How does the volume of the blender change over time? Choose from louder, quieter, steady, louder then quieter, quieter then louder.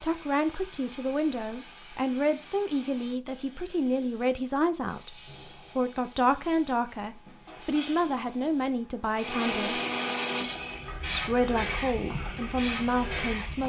quieter then louder.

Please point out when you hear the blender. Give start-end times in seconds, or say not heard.
9.2-13.6.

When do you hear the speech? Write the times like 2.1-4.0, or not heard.
0.0-5.2, 5.8-9.8, 11.2-13.6.